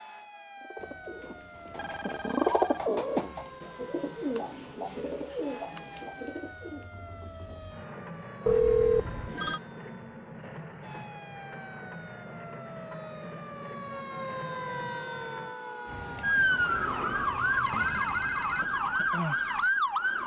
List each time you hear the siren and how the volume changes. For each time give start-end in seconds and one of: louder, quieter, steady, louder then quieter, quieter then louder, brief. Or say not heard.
0.0-20.2 louder.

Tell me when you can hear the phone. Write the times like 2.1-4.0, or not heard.
0.8-2.9, 8.4-9.6, 17.1-18.6.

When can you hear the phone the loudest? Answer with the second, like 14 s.
9 s.